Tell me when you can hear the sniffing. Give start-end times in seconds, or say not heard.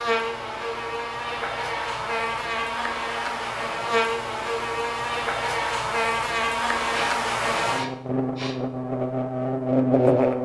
6.9-8.6.